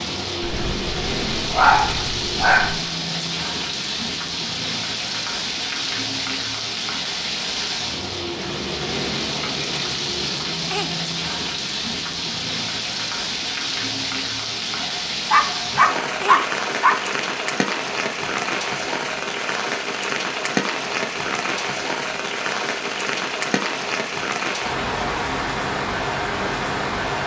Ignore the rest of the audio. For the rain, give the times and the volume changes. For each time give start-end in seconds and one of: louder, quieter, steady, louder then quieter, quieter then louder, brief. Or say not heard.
0.0-27.2 steady.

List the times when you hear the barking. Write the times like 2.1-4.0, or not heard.
0.4-2.9, 14.8-17.1.